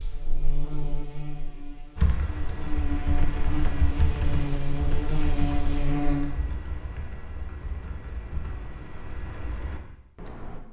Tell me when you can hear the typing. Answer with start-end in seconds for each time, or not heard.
1.9-10.6.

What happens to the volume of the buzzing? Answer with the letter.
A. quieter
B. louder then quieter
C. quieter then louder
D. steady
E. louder
C.